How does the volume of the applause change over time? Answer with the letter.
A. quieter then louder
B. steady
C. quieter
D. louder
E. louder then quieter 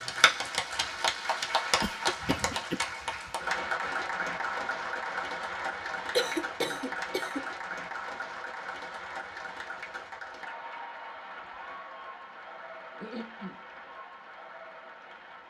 C.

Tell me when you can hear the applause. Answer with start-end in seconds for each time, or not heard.
0.0-15.4.